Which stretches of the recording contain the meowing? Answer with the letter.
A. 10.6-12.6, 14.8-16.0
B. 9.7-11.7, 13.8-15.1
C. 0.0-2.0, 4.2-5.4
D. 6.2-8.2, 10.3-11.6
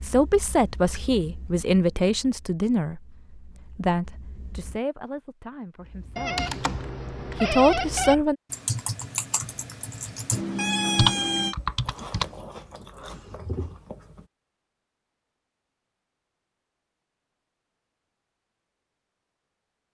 D.